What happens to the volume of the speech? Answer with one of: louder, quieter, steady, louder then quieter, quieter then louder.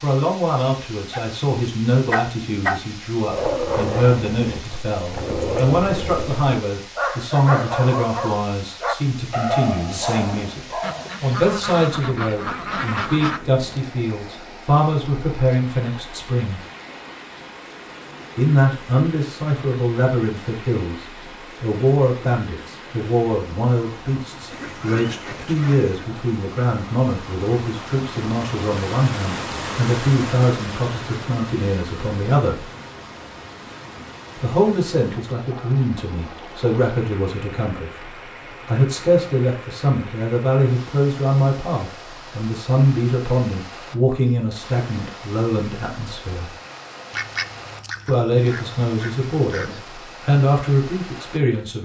steady.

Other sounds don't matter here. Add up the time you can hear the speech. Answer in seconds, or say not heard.
47 s.